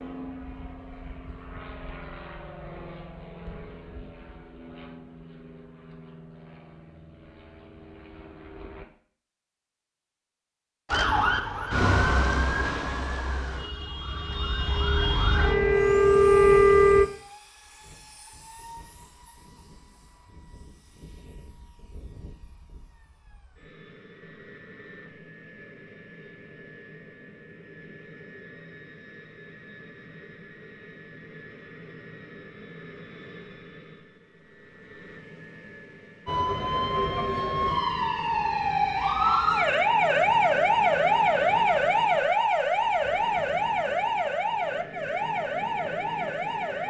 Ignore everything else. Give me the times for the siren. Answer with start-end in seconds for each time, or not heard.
10.8-17.1, 36.2-46.8.